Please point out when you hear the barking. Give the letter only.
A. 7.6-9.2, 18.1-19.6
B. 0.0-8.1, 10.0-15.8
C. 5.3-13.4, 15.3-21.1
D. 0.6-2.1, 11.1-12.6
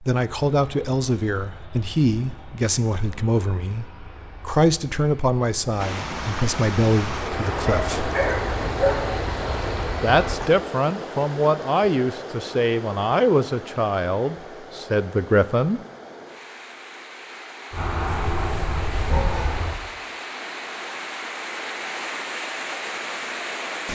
A.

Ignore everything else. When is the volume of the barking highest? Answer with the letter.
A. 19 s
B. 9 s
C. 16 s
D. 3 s
B.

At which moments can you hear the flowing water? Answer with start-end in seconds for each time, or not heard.
5.8-23.9.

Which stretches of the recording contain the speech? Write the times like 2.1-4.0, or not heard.
0.0-8.1, 10.0-15.8.